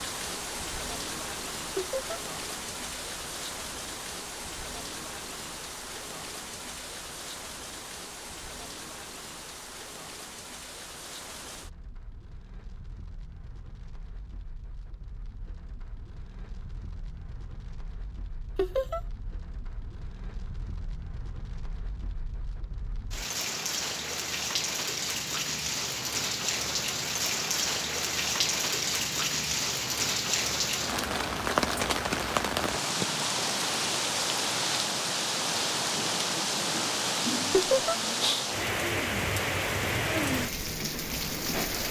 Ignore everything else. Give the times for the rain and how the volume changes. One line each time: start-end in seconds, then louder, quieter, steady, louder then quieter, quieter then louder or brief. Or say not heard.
0.0-41.8 quieter then louder.